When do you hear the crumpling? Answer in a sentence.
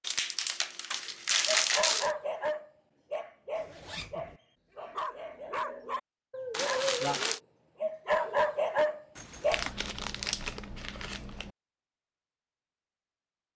The crumpling can be heard from 0.0 to 2.1 s, from 6.5 to 7.4 s and from 9.5 to 11.5 s.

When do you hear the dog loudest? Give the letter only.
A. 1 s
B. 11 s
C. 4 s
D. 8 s
D.